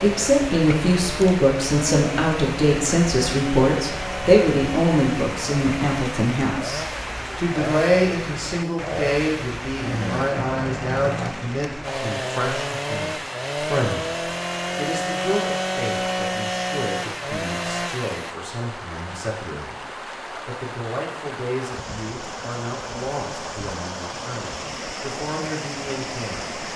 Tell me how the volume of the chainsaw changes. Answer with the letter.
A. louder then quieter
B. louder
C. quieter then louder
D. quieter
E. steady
B.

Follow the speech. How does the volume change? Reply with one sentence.
The loudness of the speech goes down.